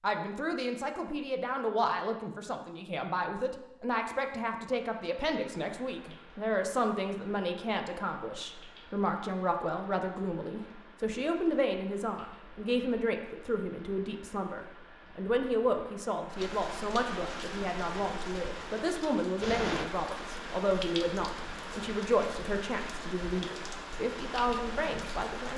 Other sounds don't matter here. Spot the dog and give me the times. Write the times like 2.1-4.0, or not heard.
not heard.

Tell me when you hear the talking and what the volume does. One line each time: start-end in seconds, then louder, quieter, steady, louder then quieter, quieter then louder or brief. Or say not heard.
0.0-25.5 steady.